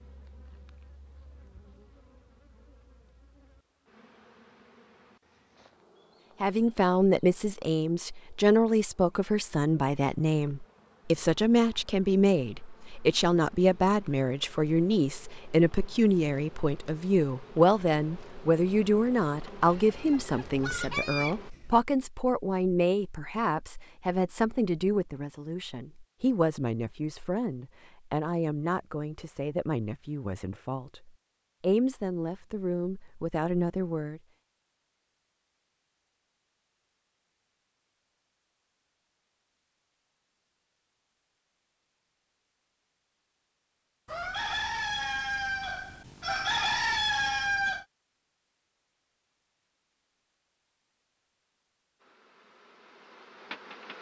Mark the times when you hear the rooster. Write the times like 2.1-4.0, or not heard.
19.6-21.8, 44.0-47.9.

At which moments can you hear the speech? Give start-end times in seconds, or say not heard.
6.4-34.2.